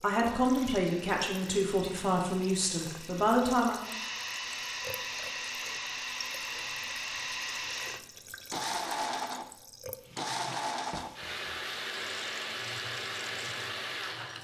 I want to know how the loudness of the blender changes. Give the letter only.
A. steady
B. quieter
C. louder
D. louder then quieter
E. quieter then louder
C.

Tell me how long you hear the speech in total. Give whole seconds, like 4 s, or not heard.
4 s.